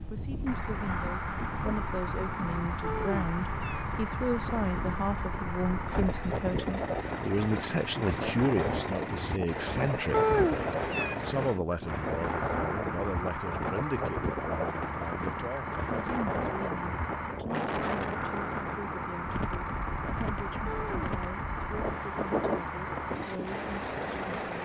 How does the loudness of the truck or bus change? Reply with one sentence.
The loudness of the truck or bus stays about the same.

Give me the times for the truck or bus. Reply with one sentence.
You can hear the truck or bus from 0.0 to 24.6 s.